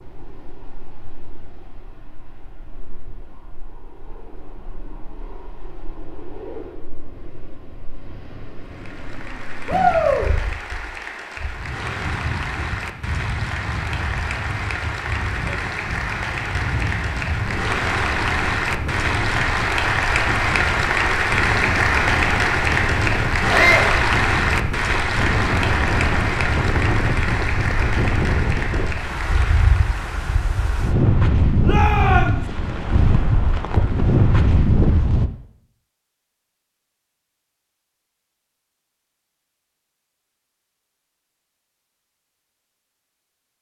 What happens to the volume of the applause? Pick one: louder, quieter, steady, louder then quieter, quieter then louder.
louder then quieter.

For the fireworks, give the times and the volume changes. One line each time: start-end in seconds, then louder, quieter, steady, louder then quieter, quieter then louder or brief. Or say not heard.
not heard.